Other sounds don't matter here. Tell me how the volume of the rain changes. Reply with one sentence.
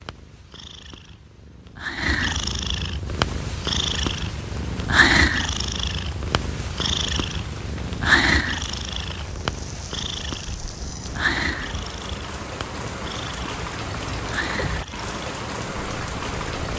The volume of the rain goes up.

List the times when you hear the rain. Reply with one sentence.
The rain can be heard from 3.0 to 16.7 s.